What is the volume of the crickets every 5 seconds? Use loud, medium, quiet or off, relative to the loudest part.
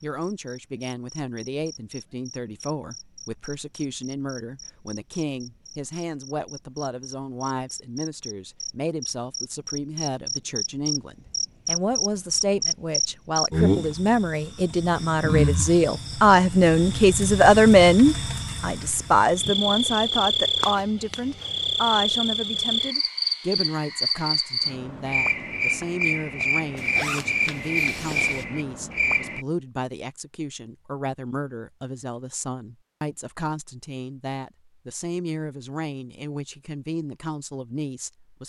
quiet, quiet, loud, loud, loud, loud, off, off.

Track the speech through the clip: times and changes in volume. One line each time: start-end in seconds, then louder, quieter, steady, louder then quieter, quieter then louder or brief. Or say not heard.
0.0-38.4 louder then quieter.